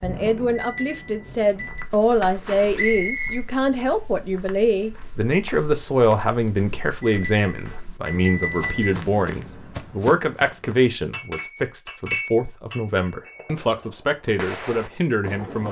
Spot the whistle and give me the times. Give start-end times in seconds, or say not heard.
2.8-3.5.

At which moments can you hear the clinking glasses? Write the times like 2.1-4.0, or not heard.
0.6-1.9, 7.0-8.9, 11.1-13.4.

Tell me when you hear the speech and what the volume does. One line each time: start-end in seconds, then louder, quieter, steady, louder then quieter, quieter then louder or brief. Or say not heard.
0.0-15.6 steady.